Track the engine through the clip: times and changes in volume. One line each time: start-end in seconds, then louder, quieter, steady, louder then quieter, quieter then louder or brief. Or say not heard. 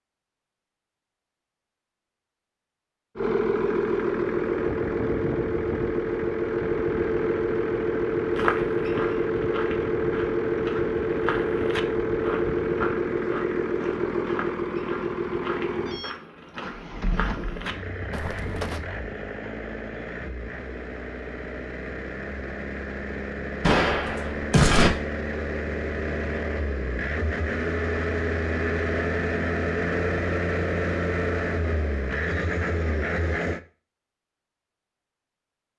3.1-33.6 quieter then louder.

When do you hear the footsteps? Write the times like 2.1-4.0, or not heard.
8.3-18.8.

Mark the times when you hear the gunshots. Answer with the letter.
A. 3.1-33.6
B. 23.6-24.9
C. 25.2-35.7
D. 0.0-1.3
B.